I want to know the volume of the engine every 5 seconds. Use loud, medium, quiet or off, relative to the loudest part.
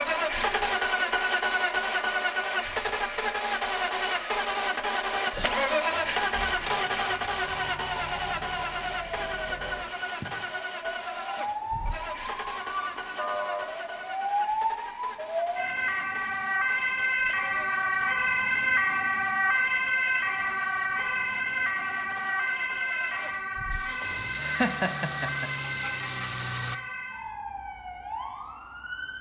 loud, loud, medium, quiet, quiet, medium.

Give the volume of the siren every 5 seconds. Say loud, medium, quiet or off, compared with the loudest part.
quiet, quiet, medium, loud, loud, medium.